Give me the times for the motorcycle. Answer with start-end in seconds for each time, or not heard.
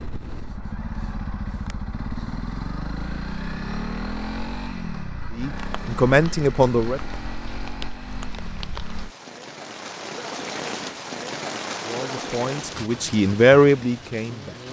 0.0-9.2.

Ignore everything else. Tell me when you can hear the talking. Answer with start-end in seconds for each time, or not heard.
5.3-7.1, 11.8-14.6.